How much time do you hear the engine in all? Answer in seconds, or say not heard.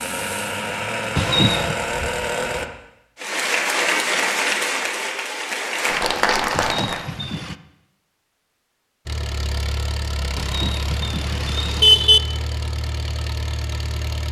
8 s.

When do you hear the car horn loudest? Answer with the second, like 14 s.
12 s.